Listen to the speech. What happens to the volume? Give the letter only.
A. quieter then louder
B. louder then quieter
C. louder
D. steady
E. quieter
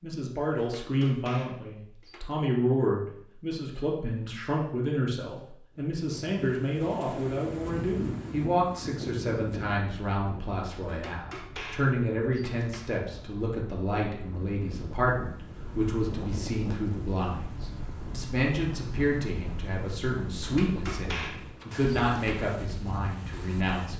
D.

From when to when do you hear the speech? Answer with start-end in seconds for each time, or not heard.
0.0-23.9.